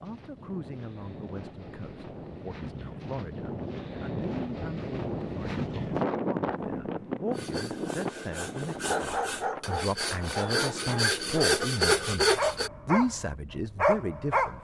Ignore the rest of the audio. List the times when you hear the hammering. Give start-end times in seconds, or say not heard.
not heard.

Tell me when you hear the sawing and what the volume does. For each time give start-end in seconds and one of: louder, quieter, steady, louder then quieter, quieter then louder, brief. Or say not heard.
7.3-12.7 louder.